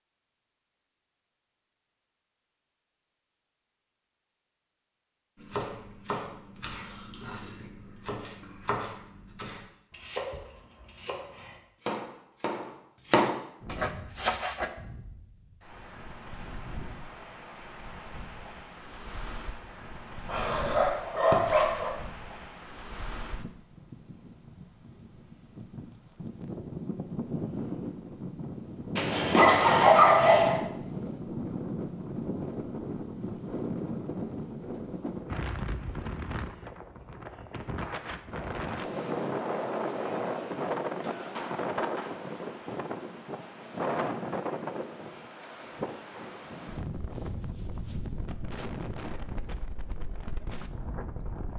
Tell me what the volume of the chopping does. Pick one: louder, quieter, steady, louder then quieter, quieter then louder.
louder.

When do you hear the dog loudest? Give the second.
30 s.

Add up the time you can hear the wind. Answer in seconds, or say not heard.
38 s.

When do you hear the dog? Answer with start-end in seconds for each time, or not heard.
20.2-21.9, 28.9-30.6.